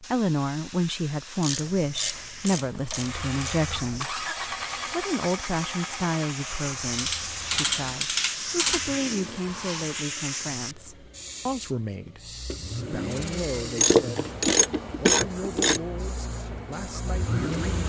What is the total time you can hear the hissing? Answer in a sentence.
You can hear the hissing for 18 seconds altogether.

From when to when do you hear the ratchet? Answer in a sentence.
The ratchet can be heard from 1.4 to 3.6 s, from 6.9 to 8.8 s and from 13.8 to 15.8 s.